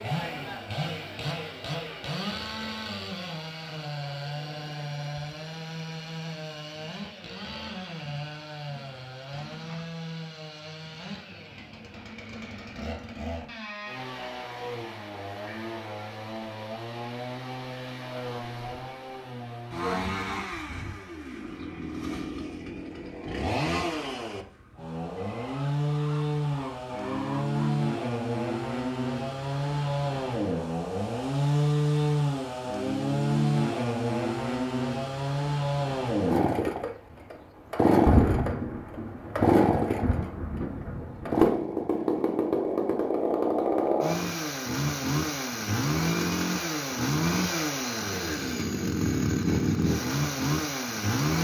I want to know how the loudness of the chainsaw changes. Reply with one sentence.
The volume of the chainsaw goes up.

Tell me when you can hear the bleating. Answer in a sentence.
You can't hear the bleating here.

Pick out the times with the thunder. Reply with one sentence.
You can hear the thunder from 38.0 to 41.5 s.